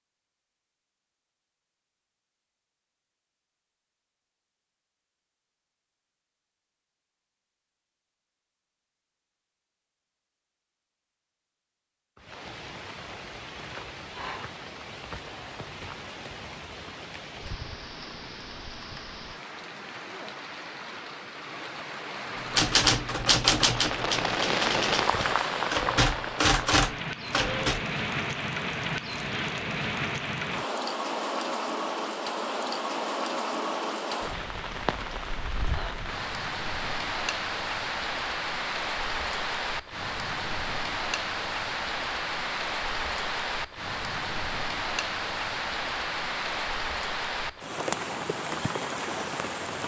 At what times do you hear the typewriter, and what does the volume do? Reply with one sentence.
You can hear the typewriter from 22.5 to 27.8 s, getting quieter then louder.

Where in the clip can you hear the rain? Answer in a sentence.
You can hear the rain from 12.2 to 49.8 s.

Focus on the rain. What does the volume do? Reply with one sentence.
The volume of the rain goes up.